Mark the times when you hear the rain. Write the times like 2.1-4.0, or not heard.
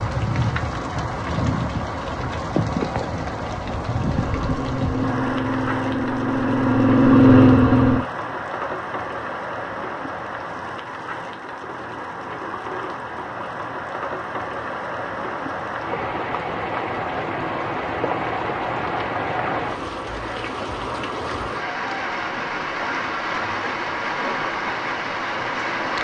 0.0-25.9.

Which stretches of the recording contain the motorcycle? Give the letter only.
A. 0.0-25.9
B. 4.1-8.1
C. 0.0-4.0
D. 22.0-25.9
B.